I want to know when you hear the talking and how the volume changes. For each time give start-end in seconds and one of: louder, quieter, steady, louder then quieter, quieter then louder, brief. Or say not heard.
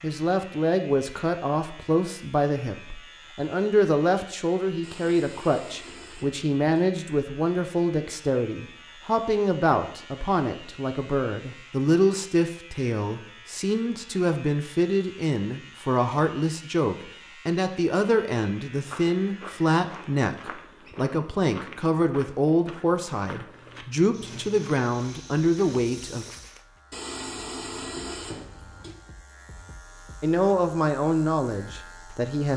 0.0-26.2 steady
30.2-32.5 brief.